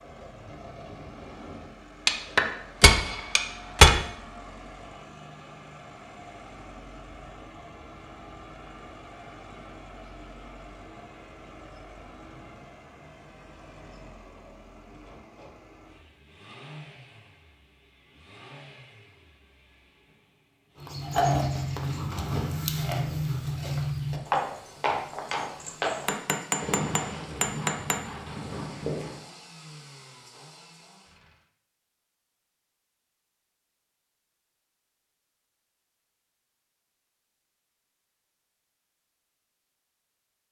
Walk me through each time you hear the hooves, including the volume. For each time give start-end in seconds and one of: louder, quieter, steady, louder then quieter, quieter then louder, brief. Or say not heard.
20.8-29.2 quieter.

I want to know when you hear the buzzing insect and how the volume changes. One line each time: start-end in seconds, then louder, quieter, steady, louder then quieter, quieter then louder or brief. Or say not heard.
not heard.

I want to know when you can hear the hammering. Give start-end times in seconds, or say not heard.
2.0-4.0, 26.1-27.9.